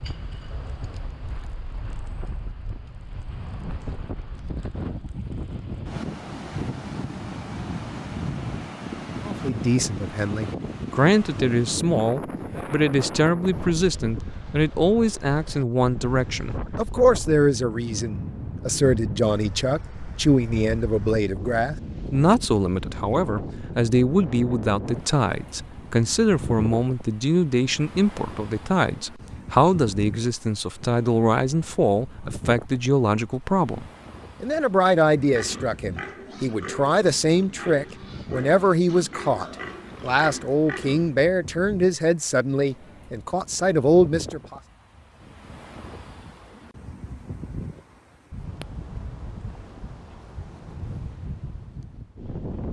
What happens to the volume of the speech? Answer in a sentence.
The volume of the speech stays about the same.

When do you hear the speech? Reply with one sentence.
The speech can be heard from 9.2 to 44.6 s.